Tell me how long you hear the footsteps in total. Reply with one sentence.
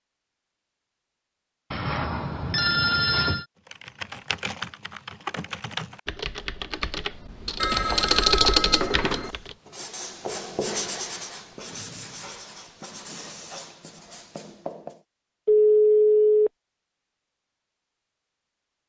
The footsteps can't be heard in this clip.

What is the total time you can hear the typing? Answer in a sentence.
The typing can be heard for 6 seconds in total.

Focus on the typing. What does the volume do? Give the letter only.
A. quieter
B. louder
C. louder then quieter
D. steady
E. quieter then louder
B.